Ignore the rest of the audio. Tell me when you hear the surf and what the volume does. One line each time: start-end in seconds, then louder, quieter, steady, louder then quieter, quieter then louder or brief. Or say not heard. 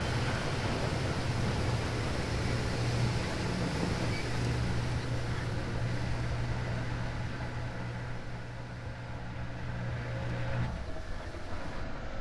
0.0-12.1 quieter.